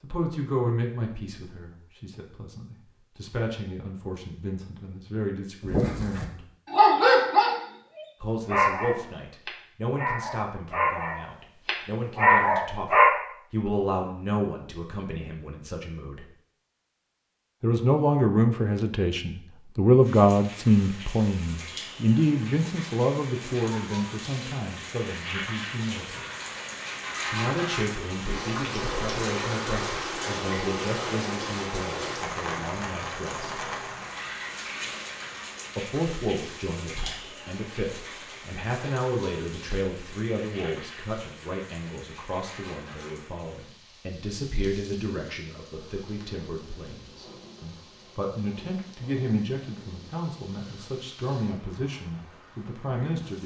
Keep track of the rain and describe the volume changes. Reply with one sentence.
The loudness of the rain goes up, then down.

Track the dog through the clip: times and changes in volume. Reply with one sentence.
You can hear the dog from 5.7 to 13.2 s, getting quieter then louder.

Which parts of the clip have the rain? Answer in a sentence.
You can hear the rain from 20.0 to 53.4 s.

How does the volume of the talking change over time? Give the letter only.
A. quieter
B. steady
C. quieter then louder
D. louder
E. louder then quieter
E.